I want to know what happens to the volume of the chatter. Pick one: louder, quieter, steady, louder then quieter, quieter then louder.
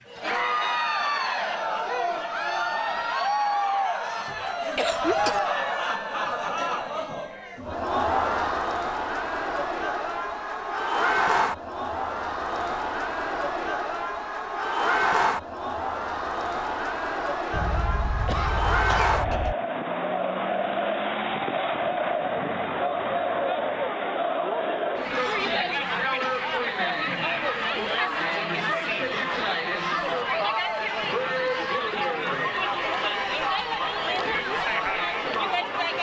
steady.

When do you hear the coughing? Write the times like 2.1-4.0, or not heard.
4.8-5.4, 17.5-19.6, 25.1-26.4.